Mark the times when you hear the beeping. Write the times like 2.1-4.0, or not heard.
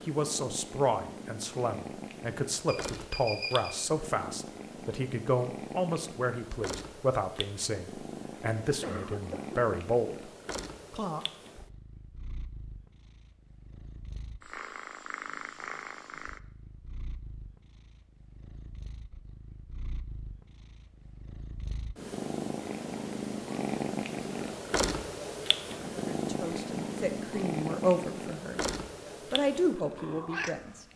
2.6-3.8.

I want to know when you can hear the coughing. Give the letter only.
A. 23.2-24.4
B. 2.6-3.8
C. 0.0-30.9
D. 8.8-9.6
D.